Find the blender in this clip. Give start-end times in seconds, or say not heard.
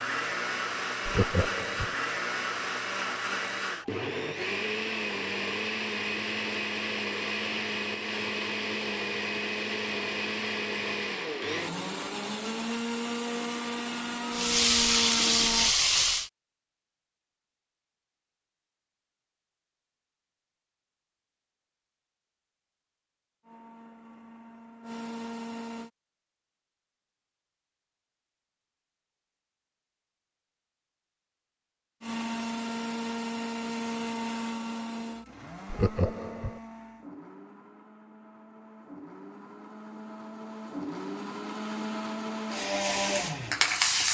0.0-15.8, 23.4-25.9, 32.0-44.0.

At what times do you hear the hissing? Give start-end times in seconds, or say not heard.
14.3-16.3, 42.5-44.0.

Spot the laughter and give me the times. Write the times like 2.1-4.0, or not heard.
1.1-1.9, 35.7-36.6.